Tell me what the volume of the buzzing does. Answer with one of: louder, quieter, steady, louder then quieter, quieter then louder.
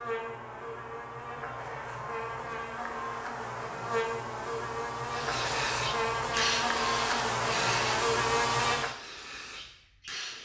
louder.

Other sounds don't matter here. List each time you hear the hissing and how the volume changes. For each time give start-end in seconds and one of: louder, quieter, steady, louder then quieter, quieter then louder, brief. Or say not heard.
5.1-10.4 quieter.